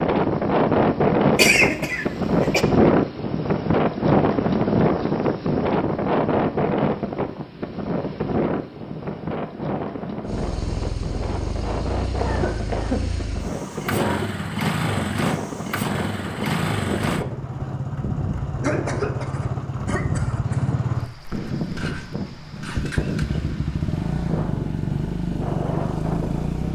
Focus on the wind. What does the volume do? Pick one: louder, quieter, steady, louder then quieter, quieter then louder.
quieter.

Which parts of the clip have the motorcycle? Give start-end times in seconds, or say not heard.
10.2-26.6.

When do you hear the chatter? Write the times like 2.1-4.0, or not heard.
not heard.